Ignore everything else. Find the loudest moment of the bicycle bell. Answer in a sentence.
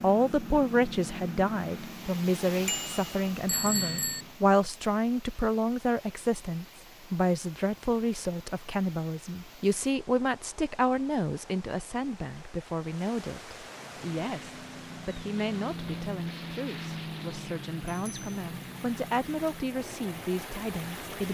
The volume of the bicycle bell peaks at 4 seconds.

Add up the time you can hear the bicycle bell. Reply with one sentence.
You can hear the bicycle bell for 2 seconds altogether.